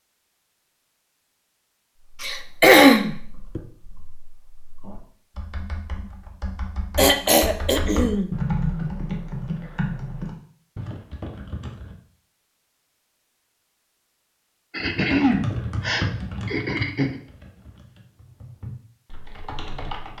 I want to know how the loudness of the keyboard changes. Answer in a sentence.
The loudness of the keyboard goes up, then down.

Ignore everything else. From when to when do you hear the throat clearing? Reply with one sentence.
You can hear the throat clearing from 2.2 to 3.6 s, from 7.0 to 8.3 s and from 14.7 to 17.2 s.